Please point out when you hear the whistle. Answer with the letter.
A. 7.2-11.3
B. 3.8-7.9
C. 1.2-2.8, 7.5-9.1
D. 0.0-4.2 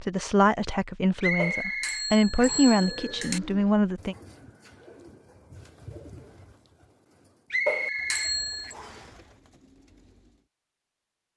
C.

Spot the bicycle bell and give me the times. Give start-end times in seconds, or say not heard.
1.4-3.4, 7.7-8.8.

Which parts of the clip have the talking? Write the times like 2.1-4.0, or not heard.
0.0-4.2.